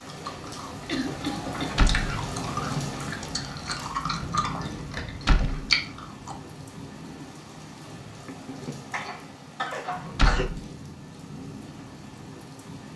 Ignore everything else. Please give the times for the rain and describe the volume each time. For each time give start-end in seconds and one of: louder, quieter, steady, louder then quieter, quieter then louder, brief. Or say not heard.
0.0-12.9 quieter.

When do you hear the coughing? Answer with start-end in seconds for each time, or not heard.
0.8-1.8, 8.2-10.4.